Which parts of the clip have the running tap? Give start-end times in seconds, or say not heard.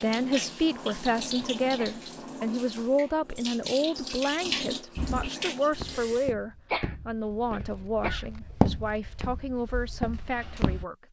0.0-6.3.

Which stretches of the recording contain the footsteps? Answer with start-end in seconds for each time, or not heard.
5.0-10.8.